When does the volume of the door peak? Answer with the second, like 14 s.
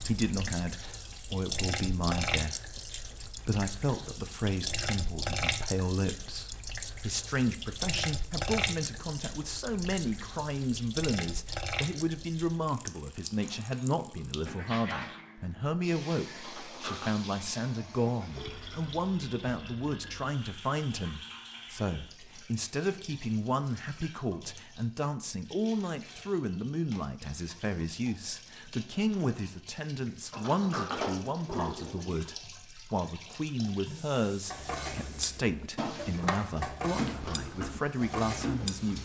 31 s.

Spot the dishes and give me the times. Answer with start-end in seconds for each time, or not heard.
34.5-38.9.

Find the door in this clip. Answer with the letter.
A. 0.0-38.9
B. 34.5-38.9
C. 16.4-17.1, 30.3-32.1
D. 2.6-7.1
C.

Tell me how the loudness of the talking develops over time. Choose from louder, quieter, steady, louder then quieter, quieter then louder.
steady.